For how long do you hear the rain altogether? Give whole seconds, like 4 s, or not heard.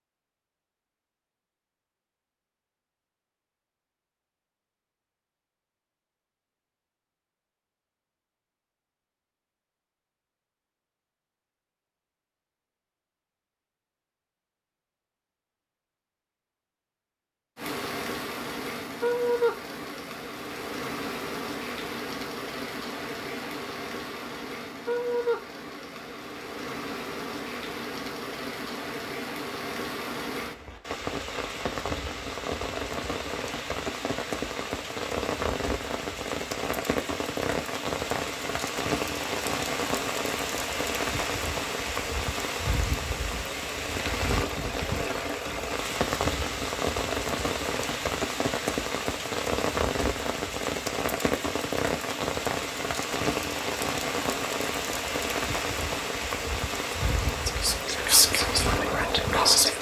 42 s.